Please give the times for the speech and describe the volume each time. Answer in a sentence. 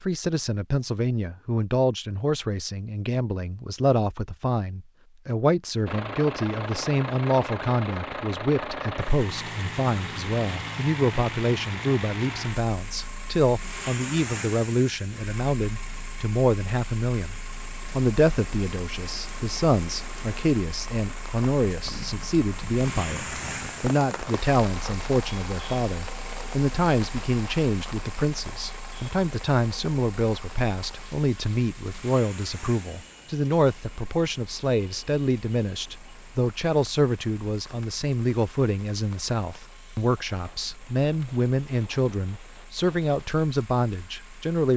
The speech can be heard from 0.0 to 44.7 s, at a steady volume.